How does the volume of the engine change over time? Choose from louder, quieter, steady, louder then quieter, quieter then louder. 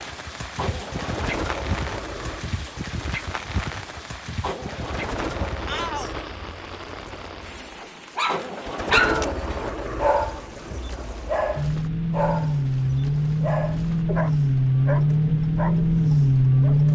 louder.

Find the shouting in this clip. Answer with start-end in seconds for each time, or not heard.
5.7-6.2, 8.9-9.3.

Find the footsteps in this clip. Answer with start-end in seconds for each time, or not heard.
not heard.